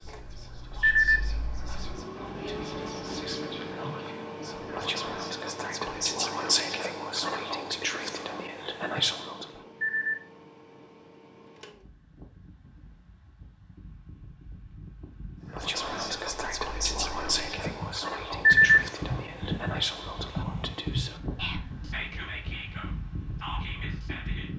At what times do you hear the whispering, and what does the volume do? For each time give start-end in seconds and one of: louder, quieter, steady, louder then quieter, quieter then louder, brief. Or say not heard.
0.0-9.4 louder
15.5-24.5 quieter.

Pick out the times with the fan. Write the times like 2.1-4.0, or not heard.
0.0-24.5.